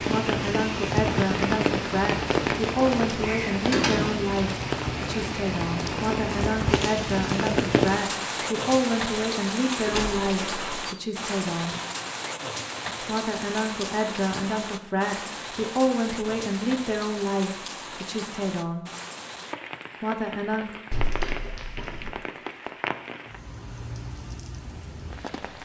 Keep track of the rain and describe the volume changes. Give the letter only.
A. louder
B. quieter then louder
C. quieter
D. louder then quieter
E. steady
C.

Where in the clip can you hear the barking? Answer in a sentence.
You can't hear the barking here.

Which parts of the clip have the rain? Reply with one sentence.
The rain can be heard from 0.0 to 25.6 s.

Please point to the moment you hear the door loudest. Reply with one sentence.
The loudest moment of the door is at 4 seconds.